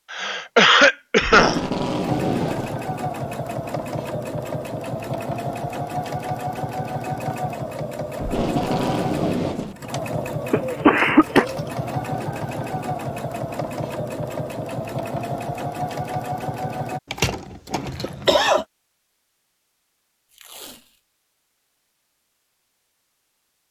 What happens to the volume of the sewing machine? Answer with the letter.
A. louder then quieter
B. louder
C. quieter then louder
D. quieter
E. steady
E.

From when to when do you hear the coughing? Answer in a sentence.
The coughing can be heard from 0.1 to 1.6 s, from 10.5 to 11.4 s and from 17.1 to 18.6 s.